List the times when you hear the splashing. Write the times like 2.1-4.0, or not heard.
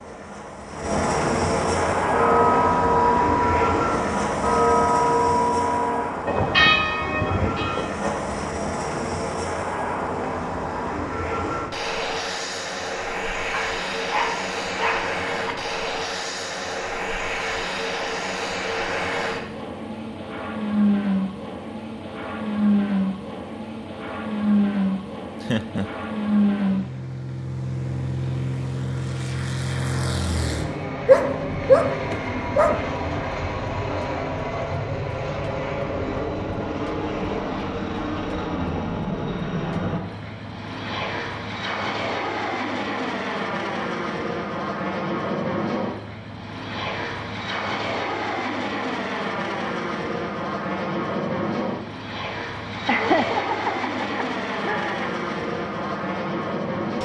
not heard.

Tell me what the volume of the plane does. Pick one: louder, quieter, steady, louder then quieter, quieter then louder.
steady.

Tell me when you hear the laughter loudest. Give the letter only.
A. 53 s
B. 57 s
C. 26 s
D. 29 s
A.